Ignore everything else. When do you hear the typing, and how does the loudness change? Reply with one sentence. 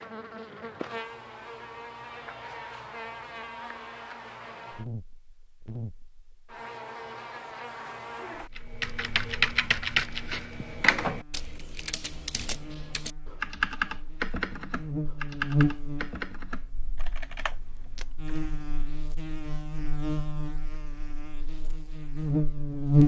The typing can be heard from 8.6 to 18.3 s, getting quieter.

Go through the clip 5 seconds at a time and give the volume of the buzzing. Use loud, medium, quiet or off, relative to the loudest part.
quiet, quiet, quiet, medium, loud.